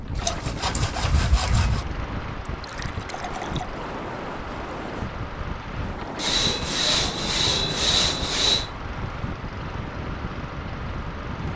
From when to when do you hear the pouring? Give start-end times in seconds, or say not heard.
2.5-3.7.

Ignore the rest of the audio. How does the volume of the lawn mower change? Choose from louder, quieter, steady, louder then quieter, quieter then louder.
steady.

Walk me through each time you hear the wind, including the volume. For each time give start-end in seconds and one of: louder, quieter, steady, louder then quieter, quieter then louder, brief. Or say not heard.
0.0-11.5 steady.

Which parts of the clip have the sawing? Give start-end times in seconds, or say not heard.
0.1-1.9, 6.2-8.7.